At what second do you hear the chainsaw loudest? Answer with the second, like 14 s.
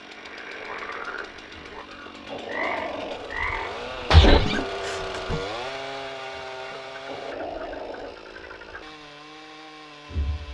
5 s.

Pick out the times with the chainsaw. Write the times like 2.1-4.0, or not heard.
0.0-10.4.